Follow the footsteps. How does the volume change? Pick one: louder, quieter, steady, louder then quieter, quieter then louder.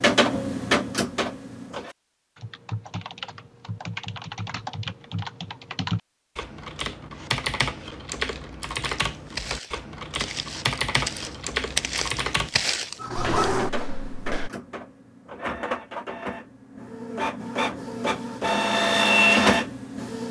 louder then quieter.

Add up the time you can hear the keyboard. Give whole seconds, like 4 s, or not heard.
10 s.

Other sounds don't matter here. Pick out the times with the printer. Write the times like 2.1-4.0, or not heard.
0.0-1.9, 13.0-20.2.